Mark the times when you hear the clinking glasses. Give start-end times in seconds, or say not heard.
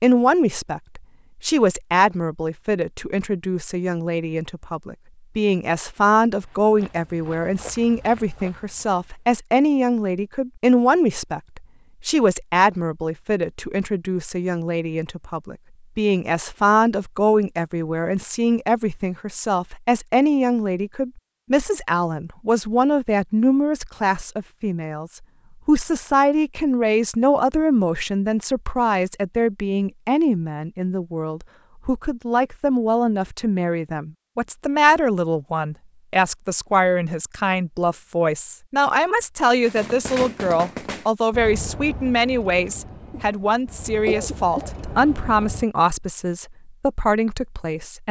not heard.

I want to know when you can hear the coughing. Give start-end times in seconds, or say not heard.
43.1-44.7.